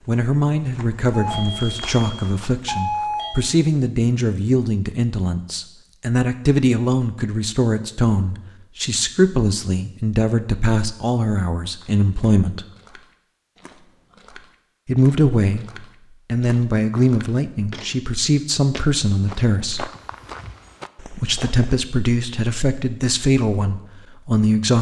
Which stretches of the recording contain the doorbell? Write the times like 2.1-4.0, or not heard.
1.1-3.5.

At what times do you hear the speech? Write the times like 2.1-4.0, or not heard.
0.1-12.7, 14.8-15.7, 16.2-19.9, 21.1-24.7.